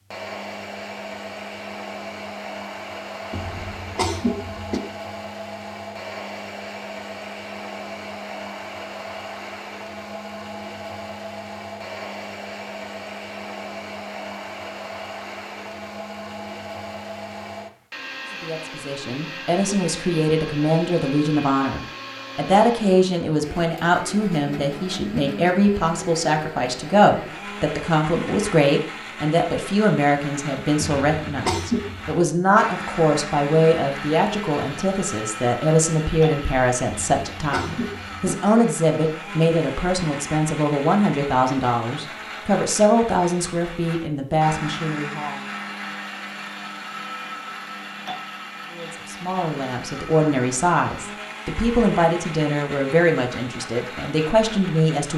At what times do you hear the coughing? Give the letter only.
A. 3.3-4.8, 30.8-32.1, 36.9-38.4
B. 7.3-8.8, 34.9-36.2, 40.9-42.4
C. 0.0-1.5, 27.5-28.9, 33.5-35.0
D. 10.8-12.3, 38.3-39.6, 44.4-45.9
A.